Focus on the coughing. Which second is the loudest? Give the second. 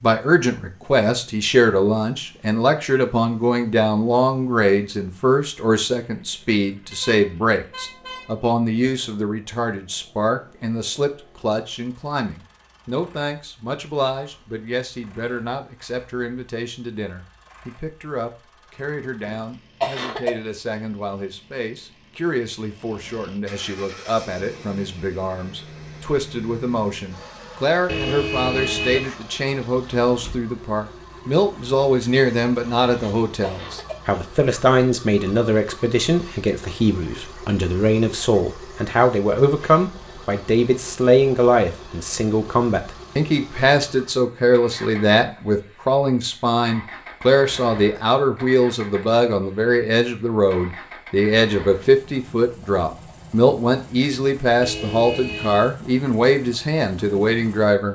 20 s.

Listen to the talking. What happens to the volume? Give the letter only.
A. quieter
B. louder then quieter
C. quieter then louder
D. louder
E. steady
C.